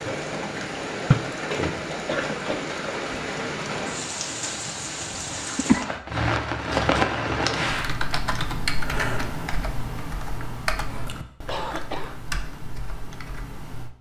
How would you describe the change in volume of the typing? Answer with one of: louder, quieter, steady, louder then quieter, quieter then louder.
quieter.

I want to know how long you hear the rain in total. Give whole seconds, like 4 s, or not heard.
8 s.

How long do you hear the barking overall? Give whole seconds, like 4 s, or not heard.
not heard.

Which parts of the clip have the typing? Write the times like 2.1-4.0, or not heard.
7.7-13.9.